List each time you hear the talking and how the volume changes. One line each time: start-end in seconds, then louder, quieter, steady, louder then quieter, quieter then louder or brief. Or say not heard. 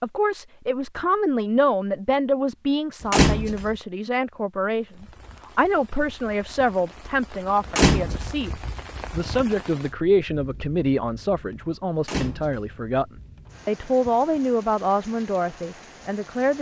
0.0-16.5 steady.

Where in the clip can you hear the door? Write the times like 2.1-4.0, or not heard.
3.0-3.8, 7.7-8.4, 12.1-12.8.